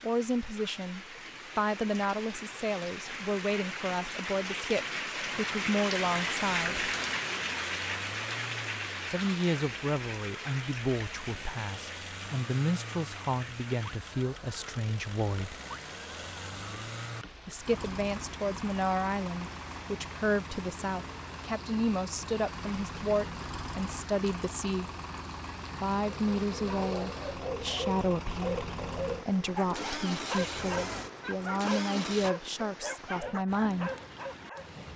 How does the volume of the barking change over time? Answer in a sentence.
The loudness of the barking stays about the same.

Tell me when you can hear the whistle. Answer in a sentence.
The whistle can't be heard in this clip.